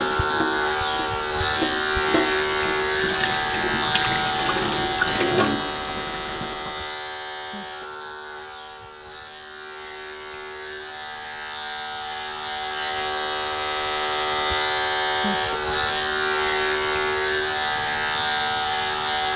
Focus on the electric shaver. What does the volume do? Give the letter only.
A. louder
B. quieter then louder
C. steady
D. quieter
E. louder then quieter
B.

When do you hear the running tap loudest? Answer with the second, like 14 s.
5 s.